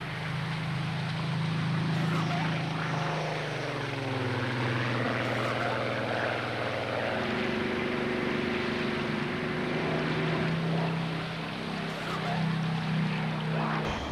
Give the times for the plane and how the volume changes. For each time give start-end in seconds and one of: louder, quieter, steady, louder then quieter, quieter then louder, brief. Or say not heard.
0.0-14.0 steady.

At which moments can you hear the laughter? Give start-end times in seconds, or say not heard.
1.9-2.5, 5.2-5.8, 11.8-12.4.